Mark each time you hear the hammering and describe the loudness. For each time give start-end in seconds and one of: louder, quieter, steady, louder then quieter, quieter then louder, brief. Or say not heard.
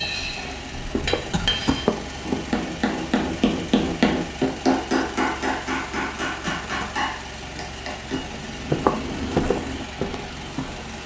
0.0-8.2 louder then quieter.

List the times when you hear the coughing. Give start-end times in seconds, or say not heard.
1.3-1.9, 6.5-7.0.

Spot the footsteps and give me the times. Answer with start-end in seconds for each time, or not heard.
0.0-2.5, 8.1-11.0.